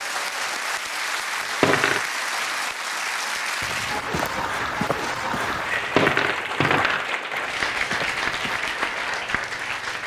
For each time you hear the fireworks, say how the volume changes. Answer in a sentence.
The fireworks can't be heard in this clip.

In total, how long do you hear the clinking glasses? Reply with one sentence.
You can hear the clinking glasses for 2 seconds altogether.